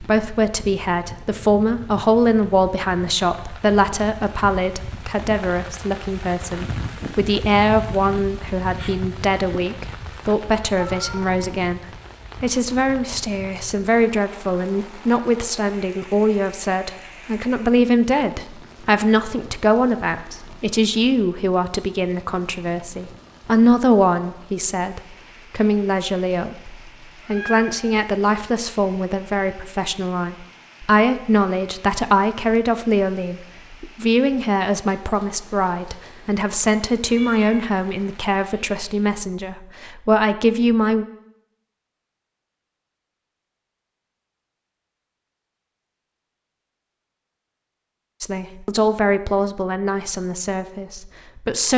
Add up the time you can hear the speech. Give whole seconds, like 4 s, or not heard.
44 s.